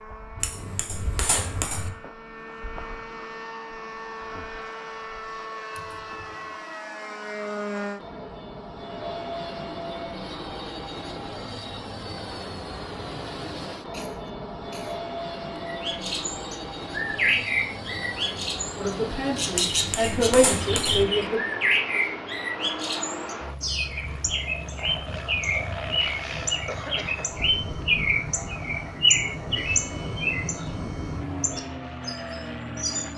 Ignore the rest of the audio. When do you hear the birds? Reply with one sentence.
You can hear the birds from 15.6 to 33.1 s.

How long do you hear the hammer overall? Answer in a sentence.
The hammer can be heard for 3 seconds in total.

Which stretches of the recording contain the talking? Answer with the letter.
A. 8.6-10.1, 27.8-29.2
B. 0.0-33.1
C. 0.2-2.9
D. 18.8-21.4
D.